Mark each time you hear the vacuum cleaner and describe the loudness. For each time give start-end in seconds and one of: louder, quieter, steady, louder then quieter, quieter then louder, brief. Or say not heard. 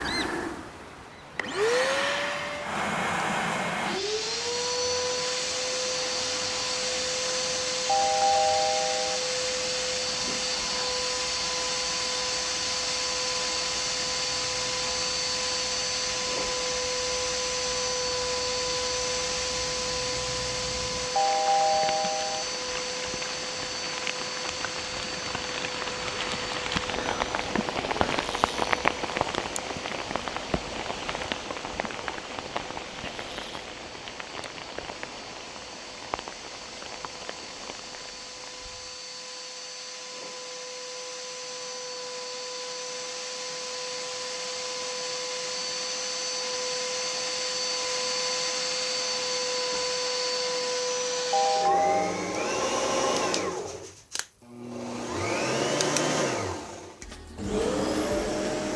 0.0-58.7 quieter then louder.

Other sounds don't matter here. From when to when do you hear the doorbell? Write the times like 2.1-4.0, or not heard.
7.8-9.2, 21.1-22.4, 51.3-52.2.